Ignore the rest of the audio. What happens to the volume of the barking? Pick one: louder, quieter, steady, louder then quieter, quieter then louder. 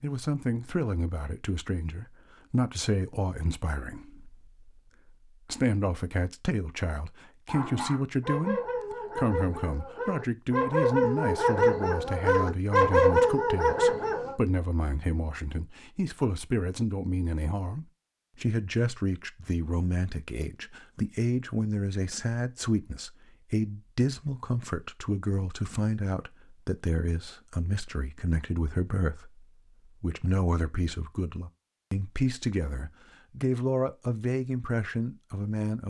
louder.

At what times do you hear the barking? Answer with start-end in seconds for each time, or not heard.
7.5-14.3.